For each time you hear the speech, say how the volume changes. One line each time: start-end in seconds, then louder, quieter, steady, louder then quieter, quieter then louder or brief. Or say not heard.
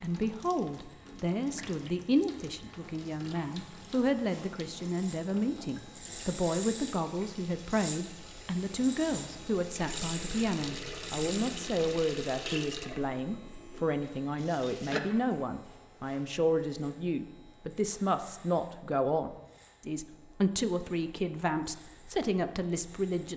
0.0-23.3 steady.